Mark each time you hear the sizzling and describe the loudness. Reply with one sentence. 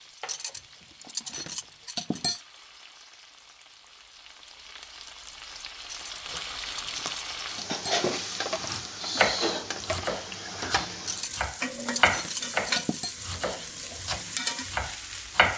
The sizzling can be heard from 0.0 to 15.5 s, getting louder.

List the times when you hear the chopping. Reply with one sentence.
You can hear the chopping from 0.1 to 1.9 s and from 8.0 to 15.5 s.